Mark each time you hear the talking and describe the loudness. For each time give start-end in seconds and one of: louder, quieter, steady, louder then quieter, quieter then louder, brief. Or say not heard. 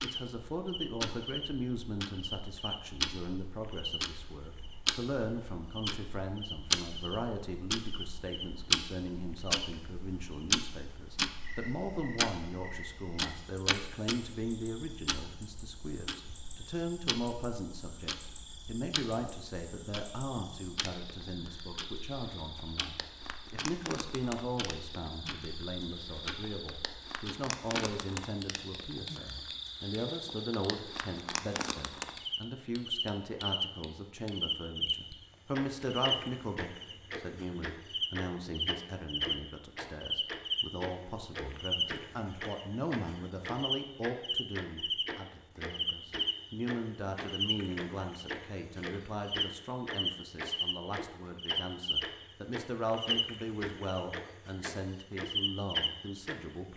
0.0-56.7 steady.